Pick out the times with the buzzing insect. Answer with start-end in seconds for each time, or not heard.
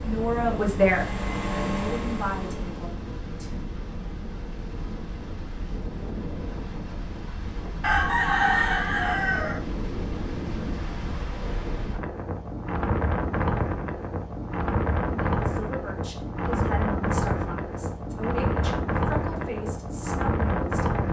not heard.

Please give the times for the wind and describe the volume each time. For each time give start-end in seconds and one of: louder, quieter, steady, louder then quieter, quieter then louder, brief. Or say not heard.
0.0-21.0 louder.